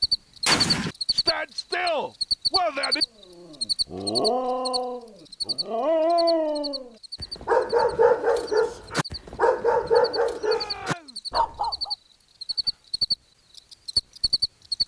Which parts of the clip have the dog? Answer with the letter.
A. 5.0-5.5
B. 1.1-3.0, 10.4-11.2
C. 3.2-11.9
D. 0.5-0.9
C.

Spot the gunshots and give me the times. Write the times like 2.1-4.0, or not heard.
0.5-0.9.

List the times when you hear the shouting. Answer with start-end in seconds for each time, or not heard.
1.1-3.0, 10.4-11.2.